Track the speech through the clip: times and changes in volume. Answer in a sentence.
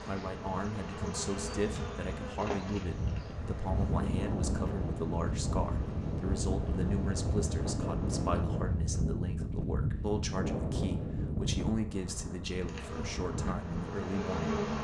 The speech can be heard from 0.1 to 14.6 s, at a steady volume.